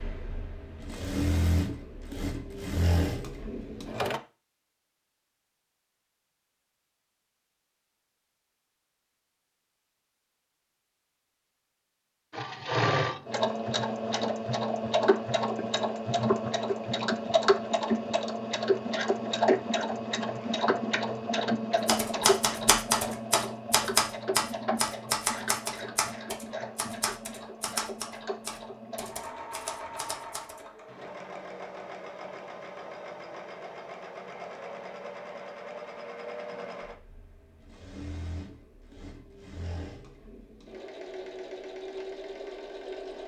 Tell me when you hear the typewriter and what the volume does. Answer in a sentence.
You can hear the typewriter from 21.9 to 30.6 s, getting quieter.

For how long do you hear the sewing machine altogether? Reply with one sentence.
The sewing machine can be heard for 35 seconds in total.